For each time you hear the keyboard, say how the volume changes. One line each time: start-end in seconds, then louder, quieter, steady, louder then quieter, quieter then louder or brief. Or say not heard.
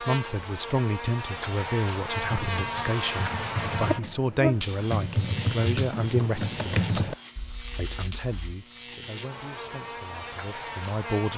2.2-8.6 louder then quieter.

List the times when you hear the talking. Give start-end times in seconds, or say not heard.
0.0-6.9, 7.8-11.3.